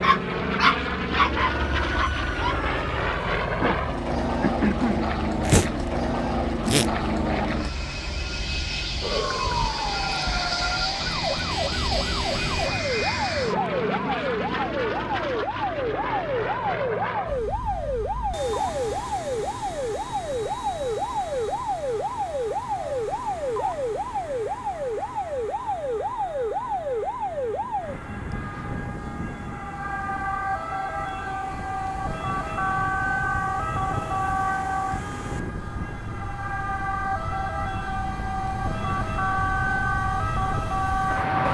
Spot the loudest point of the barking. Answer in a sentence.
The volume of the barking peaks at 1 second.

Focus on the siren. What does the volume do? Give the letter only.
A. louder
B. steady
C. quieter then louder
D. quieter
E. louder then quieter
B.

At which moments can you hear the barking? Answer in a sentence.
The barking can be heard from 0.0 to 2.5 s.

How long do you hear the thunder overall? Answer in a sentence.
The thunder can be heard for 3 seconds in total.